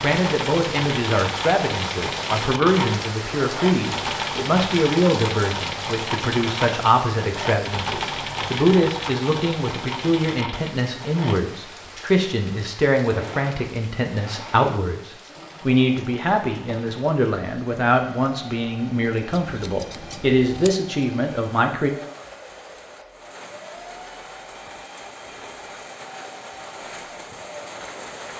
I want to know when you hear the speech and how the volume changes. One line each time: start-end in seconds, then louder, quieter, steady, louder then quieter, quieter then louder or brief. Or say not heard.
0.0-21.9 steady.